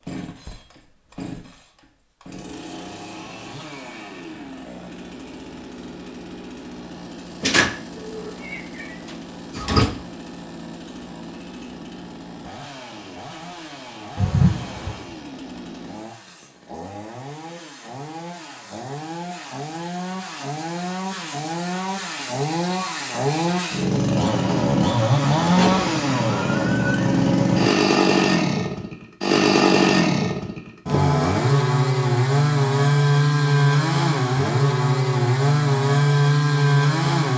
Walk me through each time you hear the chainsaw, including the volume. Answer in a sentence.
You can hear the chainsaw from 0.0 to 37.3 s, getting louder.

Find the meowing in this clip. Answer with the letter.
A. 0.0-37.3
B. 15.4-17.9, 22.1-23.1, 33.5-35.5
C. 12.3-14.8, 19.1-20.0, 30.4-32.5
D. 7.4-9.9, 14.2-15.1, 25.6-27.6
D.